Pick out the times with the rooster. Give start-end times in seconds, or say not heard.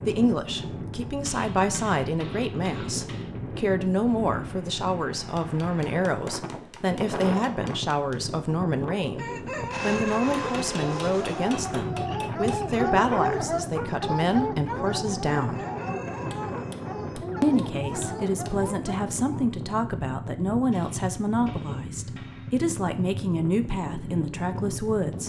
9.2-11.2, 15.3-17.2.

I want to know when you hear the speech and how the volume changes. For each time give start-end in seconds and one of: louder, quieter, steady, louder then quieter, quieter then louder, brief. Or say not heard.
0.0-15.7 steady
17.4-25.2 steady.